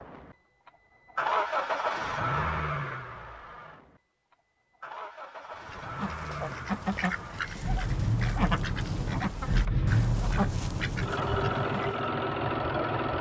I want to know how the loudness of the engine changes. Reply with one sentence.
The volume of the engine goes down, then up.